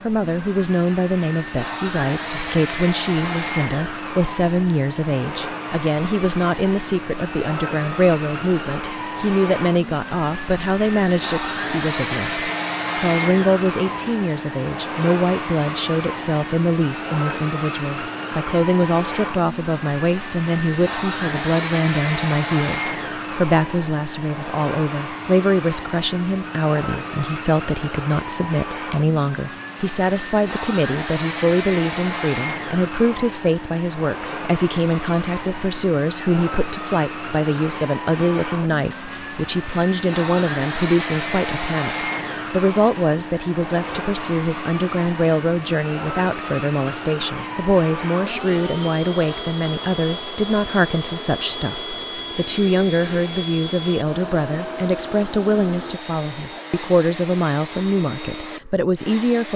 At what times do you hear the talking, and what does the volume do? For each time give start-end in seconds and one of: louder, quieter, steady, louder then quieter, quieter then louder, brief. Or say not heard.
0.0-59.5 steady.